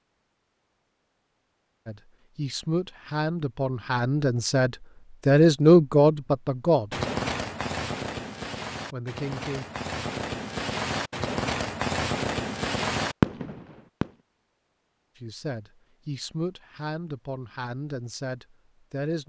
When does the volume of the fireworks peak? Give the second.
13 s.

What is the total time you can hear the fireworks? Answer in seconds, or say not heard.
7 s.